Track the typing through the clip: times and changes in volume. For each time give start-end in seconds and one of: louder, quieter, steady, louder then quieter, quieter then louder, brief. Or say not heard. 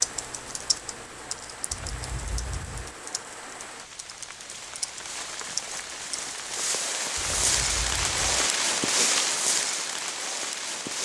0.0-6.7 quieter then louder.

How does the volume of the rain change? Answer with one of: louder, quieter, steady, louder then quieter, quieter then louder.
louder.